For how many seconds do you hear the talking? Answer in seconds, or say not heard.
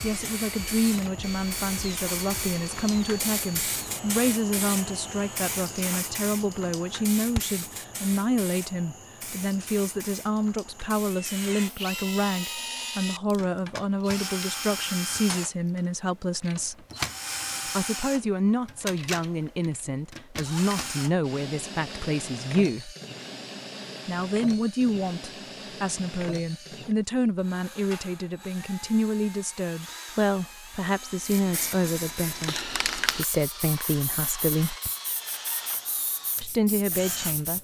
34 s.